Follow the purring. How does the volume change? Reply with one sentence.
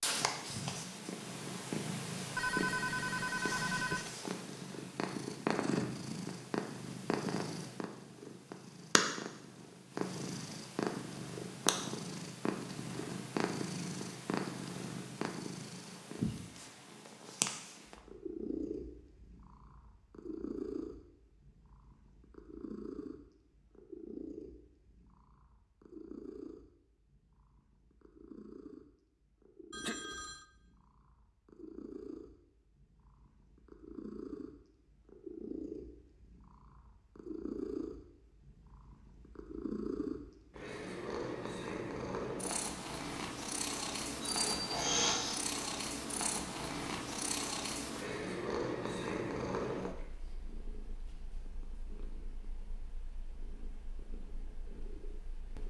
The loudness of the purring goes down, then up.